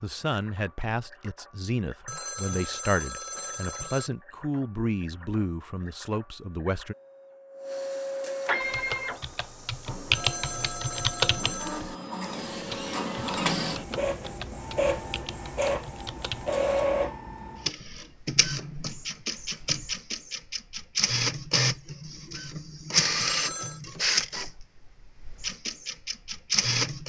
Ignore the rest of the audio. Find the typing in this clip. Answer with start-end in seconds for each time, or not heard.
8.6-16.5.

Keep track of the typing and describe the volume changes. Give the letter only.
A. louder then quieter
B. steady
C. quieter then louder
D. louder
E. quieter
E.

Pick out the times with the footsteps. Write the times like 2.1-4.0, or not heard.
not heard.